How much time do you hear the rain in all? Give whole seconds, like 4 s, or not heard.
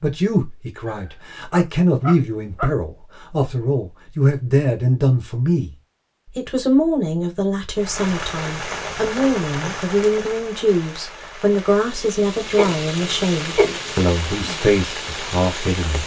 8 s.